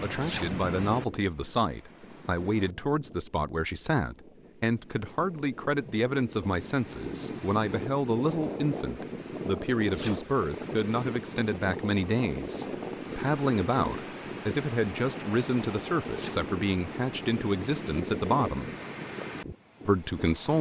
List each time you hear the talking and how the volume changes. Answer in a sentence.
You can hear the talking from 0.0 to 18.7 s, at a steady volume; and briefly from 19.9 to 20.5 s.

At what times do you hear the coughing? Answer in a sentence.
You can't hear the coughing here.